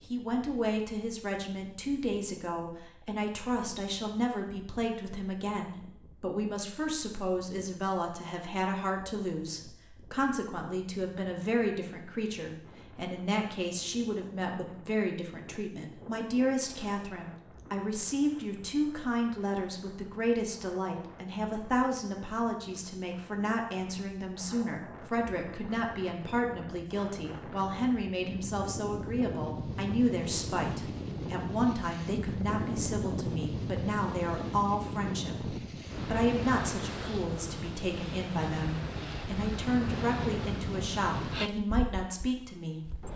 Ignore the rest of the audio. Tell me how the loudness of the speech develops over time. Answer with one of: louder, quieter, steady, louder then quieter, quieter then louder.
steady.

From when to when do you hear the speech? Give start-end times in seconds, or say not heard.
0.1-43.1.